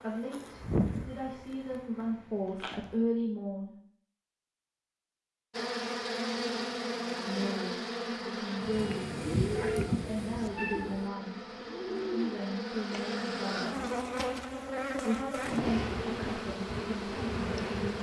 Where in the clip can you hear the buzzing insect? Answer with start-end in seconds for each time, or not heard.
0.0-3.0, 5.5-17.9.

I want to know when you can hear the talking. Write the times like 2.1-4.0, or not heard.
0.0-3.8, 7.2-9.2, 10.1-11.4, 12.1-13.8, 15.0-17.9.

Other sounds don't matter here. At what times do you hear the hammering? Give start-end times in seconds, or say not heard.
not heard.